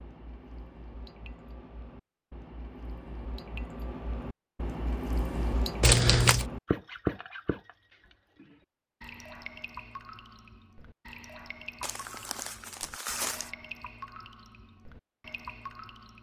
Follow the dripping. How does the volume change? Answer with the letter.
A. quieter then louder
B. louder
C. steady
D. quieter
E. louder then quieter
E.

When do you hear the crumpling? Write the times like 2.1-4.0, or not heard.
5.8-6.5, 11.8-13.5.